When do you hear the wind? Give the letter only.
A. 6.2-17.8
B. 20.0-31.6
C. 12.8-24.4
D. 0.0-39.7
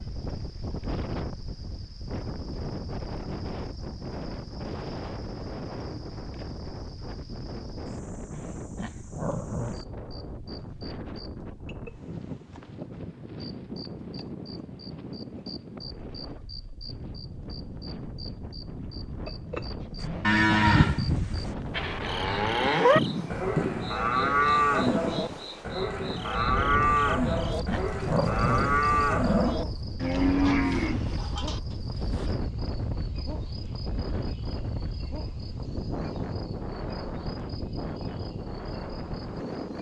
D.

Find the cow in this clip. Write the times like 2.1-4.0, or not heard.
20.0-31.6.